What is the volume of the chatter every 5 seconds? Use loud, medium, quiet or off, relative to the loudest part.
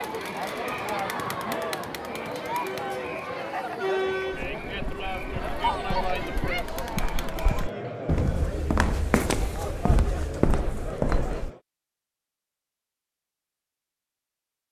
loud, loud, medium.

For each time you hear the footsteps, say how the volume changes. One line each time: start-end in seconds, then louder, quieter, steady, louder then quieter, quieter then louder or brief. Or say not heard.
4.3-11.5 louder.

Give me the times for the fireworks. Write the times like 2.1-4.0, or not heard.
not heard.